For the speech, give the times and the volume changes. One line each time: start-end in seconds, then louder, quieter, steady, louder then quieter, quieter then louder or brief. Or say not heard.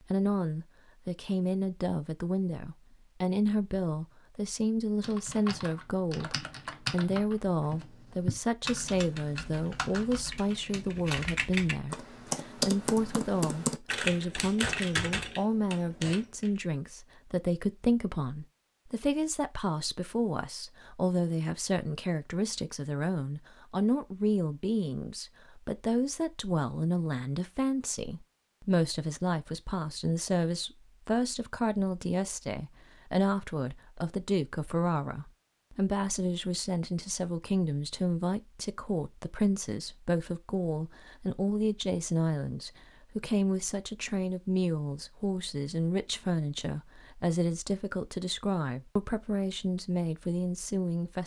0.1-51.2 steady.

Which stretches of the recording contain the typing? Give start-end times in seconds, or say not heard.
5.0-16.5.